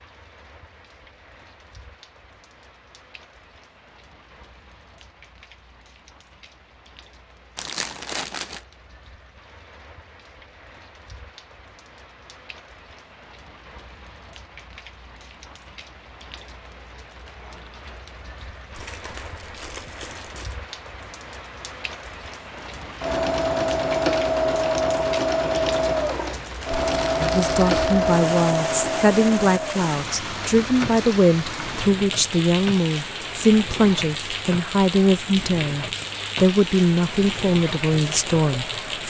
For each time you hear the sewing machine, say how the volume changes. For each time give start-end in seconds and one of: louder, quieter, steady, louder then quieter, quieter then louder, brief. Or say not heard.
22.6-39.0 quieter.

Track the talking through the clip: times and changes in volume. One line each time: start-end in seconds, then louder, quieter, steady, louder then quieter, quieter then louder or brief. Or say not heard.
27.2-39.0 steady.